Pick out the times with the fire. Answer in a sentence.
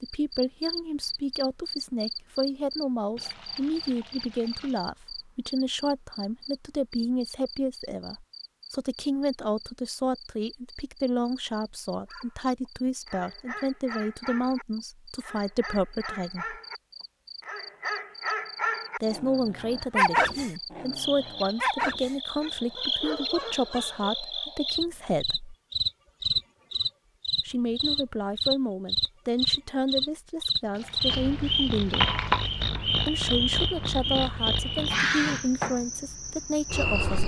You can't hear the fire here.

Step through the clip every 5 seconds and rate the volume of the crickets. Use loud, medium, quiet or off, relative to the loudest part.
medium, quiet, quiet, quiet, medium, loud, loud, loud.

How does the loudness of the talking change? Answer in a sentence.
The loudness of the talking stays about the same.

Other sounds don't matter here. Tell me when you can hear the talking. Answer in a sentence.
The talking can be heard from 0.0 to 16.6 s, from 19.0 to 25.6 s, from 27.4 to 32.1 s and from 33.0 to 37.2 s.